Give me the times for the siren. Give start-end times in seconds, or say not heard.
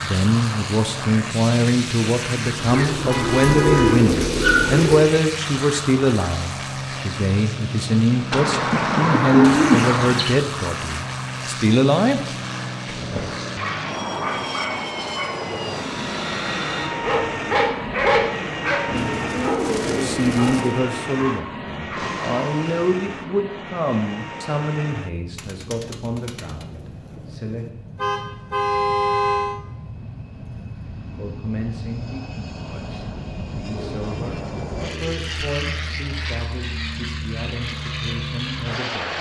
not heard.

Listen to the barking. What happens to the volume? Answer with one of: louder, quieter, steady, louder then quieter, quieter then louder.
louder then quieter.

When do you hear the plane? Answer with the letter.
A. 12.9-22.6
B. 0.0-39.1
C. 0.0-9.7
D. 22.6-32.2
B.